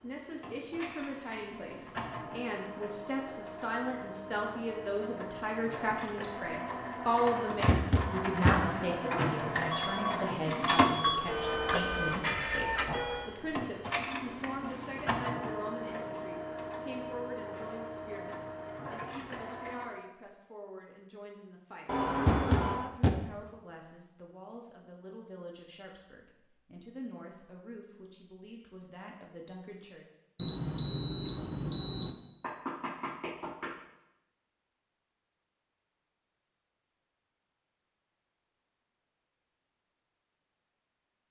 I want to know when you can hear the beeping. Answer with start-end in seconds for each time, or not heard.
9.7-11.2, 21.9-22.9, 30.4-32.1.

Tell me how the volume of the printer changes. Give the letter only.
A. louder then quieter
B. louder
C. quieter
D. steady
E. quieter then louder
A.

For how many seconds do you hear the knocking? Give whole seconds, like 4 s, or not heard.
3 s.